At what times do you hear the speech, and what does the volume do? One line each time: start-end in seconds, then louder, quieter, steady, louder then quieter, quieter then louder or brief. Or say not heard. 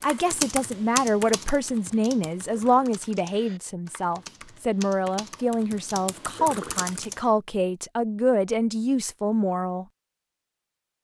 0.0-9.8 steady.